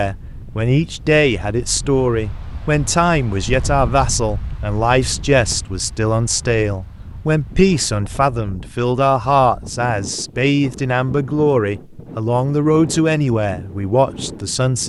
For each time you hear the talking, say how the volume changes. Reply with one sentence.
You can hear the talking from 0.0 to 14.8 s, at a steady volume.